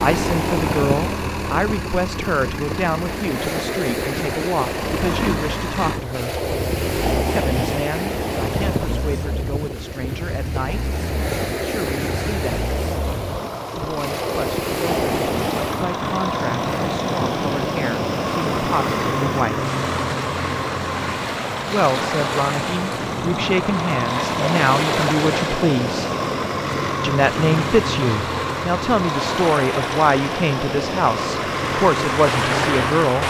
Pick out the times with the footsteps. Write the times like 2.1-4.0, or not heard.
not heard.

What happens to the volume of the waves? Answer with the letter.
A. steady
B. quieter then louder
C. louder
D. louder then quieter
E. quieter
A.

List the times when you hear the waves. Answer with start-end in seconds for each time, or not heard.
0.0-33.2.